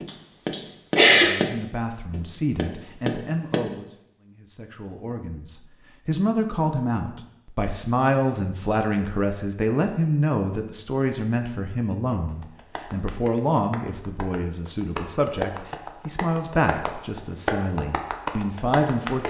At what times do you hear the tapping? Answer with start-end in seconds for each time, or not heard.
0.0-3.8, 12.2-19.2.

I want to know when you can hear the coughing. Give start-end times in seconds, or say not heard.
0.1-1.3.